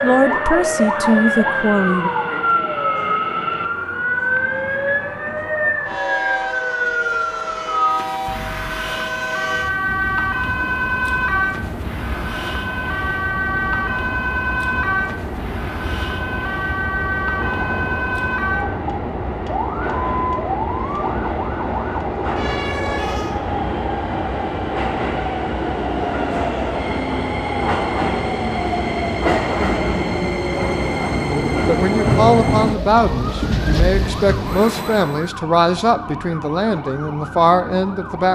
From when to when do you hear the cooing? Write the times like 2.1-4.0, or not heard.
not heard.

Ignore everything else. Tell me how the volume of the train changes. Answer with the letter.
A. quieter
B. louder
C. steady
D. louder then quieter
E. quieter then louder
B.